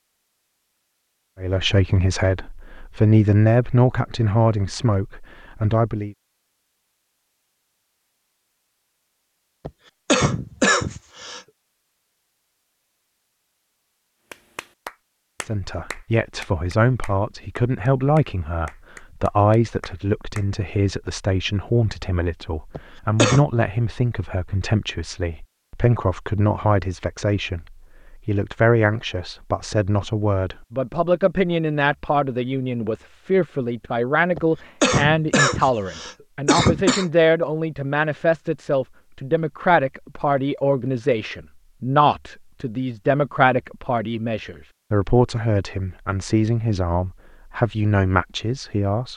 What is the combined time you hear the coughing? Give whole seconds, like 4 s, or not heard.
5 s.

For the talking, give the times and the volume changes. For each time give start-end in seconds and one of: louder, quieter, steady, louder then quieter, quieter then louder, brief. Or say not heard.
1.4-6.2 louder then quieter
15.4-49.1 steady.